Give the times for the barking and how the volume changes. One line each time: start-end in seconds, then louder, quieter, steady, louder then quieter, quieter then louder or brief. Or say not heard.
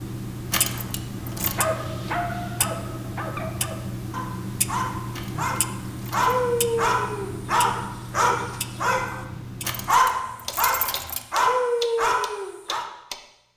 1.4-12.8 louder.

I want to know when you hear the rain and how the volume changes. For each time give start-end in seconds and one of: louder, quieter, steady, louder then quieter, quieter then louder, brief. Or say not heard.
not heard.